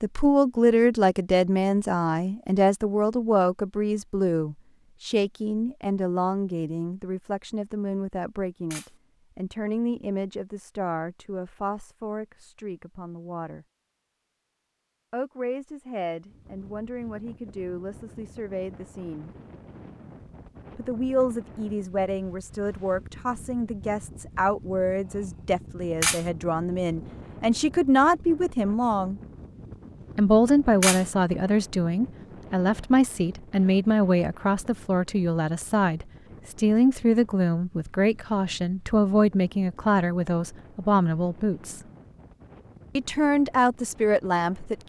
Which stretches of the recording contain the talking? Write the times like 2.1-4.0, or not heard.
0.0-13.7, 15.1-19.3, 20.8-29.2, 30.1-41.8, 43.0-44.8.